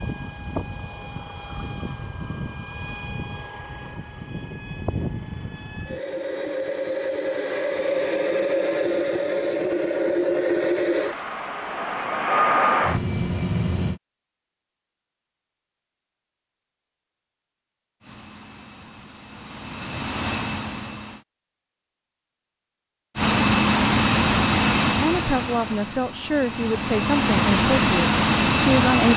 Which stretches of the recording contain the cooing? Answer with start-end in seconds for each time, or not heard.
not heard.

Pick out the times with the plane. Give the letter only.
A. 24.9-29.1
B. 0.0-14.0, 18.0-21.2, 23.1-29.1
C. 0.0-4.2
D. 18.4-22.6
B.